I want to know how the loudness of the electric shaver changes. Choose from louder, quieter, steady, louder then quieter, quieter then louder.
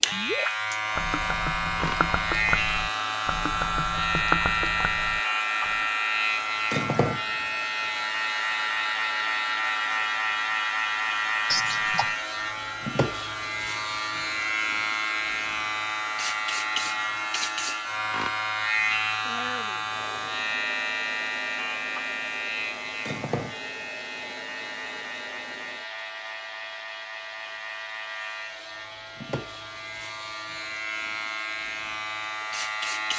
quieter.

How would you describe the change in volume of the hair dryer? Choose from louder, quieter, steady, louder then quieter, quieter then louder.
quieter.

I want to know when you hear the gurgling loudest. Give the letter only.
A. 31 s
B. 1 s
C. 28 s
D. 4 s
D.